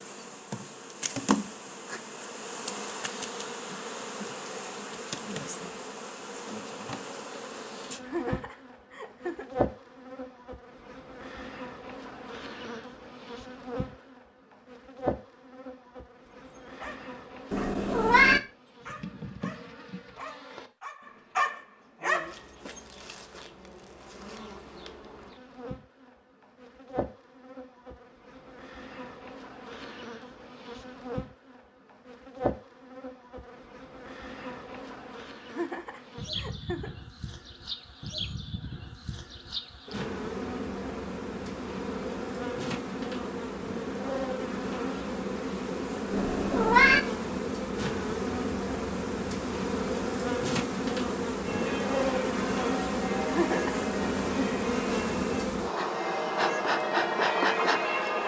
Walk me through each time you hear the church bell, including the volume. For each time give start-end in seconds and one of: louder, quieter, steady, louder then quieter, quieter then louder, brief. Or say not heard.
51.4-58.2 louder.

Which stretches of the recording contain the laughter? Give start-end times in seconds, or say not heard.
8.0-9.4, 35.5-36.9, 53.2-53.9.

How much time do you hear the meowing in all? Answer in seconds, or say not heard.
2 s.